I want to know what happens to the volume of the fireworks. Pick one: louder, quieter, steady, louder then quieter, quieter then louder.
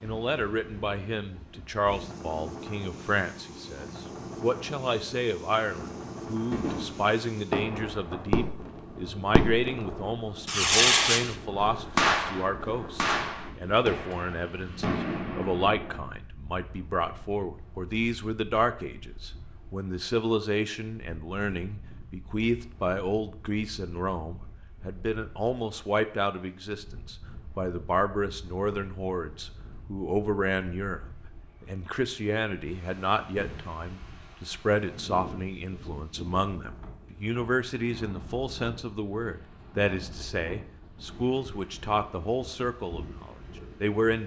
louder then quieter.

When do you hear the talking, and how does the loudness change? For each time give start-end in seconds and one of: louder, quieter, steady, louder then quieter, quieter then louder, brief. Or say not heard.
0.0-31.0 steady
31.6-44.2 steady.